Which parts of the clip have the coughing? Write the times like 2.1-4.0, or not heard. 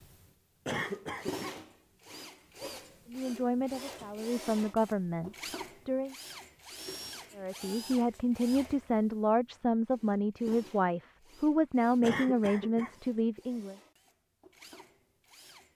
0.7-1.6, 12.0-13.0.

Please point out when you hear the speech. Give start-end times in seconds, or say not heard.
3.1-6.2, 7.3-13.8.